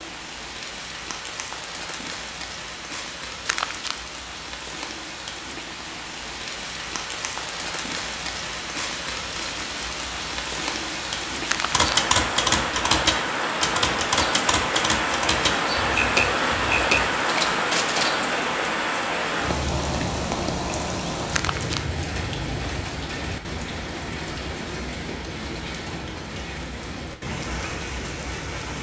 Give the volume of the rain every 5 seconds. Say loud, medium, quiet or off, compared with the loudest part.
medium, medium, loud, loud, medium, medium.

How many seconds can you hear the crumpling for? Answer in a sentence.
The crumpling can be heard for 2 seconds in total.